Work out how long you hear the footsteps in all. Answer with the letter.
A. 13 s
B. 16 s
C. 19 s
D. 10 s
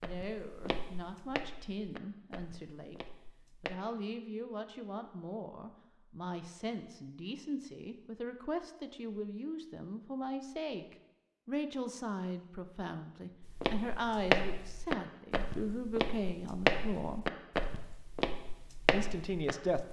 D.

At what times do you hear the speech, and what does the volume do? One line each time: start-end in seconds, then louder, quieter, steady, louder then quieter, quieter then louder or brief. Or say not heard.
0.0-17.2 louder
18.9-19.8 brief.